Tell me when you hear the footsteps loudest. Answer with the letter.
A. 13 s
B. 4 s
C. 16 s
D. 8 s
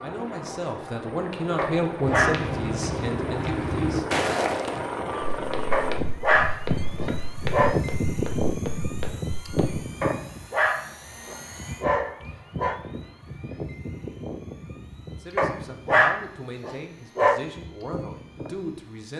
B.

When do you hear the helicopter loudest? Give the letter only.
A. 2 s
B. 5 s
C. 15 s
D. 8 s
D.